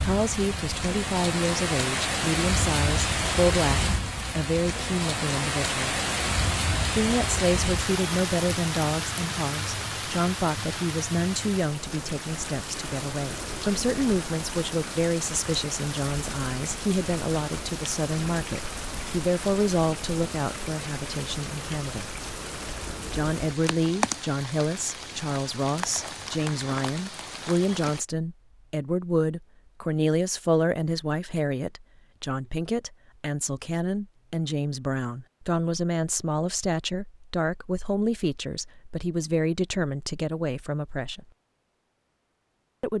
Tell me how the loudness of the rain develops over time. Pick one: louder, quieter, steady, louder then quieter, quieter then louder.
quieter.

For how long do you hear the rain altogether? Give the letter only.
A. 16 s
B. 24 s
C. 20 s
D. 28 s
D.